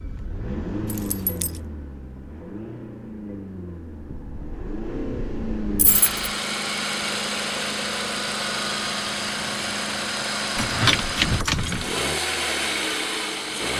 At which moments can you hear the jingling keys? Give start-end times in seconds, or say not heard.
0.8-1.6, 5.8-6.3, 10.6-11.9.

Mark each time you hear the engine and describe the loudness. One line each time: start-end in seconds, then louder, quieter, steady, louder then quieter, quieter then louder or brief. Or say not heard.
0.0-13.7 louder.